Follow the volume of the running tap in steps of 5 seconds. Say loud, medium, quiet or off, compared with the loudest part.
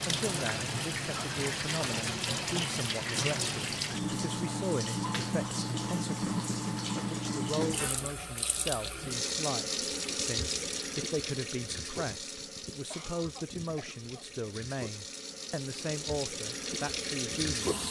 loud, loud, medium, loud.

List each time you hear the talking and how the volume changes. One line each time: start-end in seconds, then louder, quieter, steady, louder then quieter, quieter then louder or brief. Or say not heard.
0.1-17.8 steady.